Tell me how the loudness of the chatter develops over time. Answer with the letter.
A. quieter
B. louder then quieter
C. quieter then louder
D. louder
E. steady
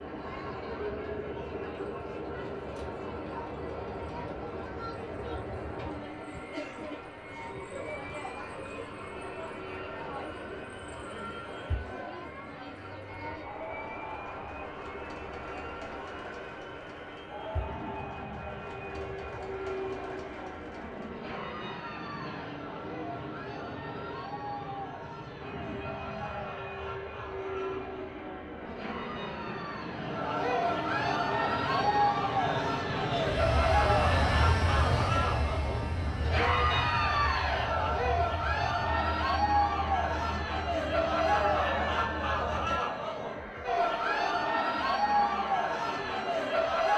D.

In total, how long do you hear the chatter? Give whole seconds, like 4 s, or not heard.
47 s.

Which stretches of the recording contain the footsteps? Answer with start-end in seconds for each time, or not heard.
not heard.